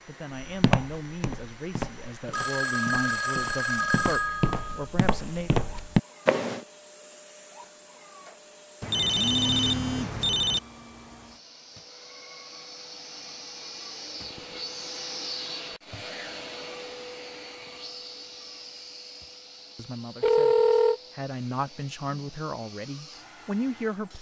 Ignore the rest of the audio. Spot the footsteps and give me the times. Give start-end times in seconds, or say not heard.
0.4-6.7.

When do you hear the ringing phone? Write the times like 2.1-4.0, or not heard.
2.3-4.8, 8.8-10.6, 20.2-21.0.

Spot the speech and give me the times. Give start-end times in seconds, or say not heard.
0.1-5.5, 19.8-24.1.